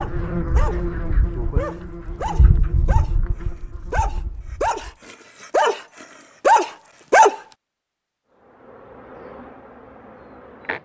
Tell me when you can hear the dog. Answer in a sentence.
The dog can be heard from 0.0 to 7.3 s.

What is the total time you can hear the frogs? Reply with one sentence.
You can't hear the frogs here.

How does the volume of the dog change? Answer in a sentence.
The loudness of the dog goes up.